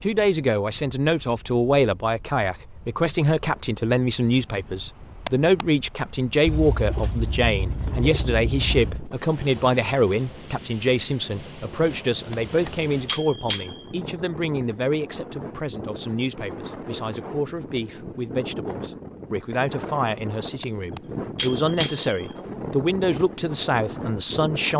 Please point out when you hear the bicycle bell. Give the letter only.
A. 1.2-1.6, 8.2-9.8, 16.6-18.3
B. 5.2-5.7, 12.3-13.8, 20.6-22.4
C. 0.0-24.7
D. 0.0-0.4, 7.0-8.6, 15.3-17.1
B.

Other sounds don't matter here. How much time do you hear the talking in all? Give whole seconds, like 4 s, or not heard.
25 s.